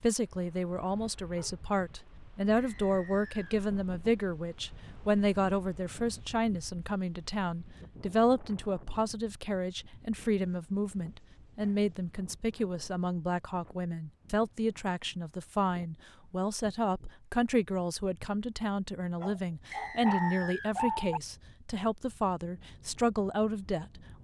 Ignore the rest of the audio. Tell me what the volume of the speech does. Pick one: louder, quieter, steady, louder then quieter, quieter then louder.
steady.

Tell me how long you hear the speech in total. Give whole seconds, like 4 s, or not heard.
24 s.